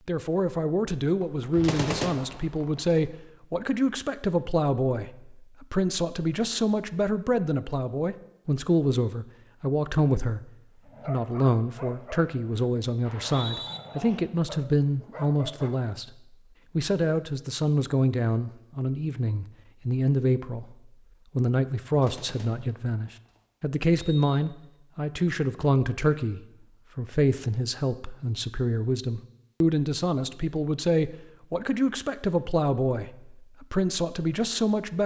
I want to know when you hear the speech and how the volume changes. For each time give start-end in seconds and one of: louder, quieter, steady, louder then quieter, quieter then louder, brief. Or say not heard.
0.1-35.0 steady.